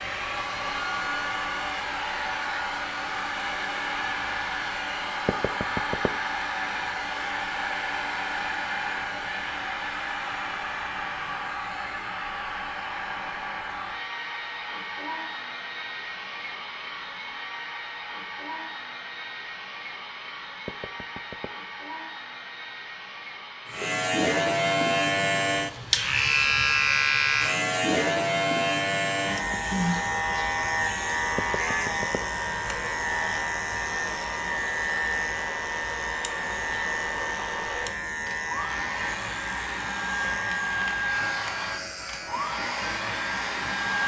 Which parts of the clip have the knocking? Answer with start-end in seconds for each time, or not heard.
5.2-6.1, 20.6-21.5, 31.4-32.2.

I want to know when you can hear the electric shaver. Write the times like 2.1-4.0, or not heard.
23.7-44.0.